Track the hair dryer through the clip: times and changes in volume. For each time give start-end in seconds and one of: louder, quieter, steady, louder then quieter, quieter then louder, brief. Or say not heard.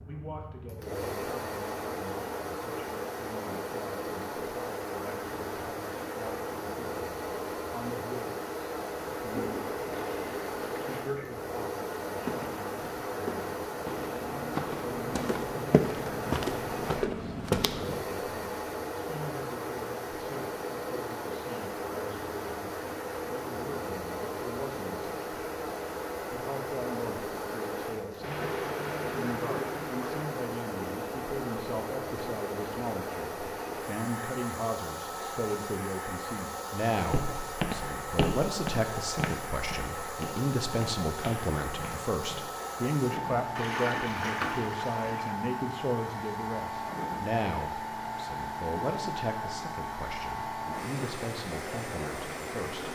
0.0-52.9 steady.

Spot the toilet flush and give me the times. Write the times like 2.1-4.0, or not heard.
9.3-11.3, 28.2-30.2, 43.5-45.4.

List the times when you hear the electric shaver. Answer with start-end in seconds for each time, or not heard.
not heard.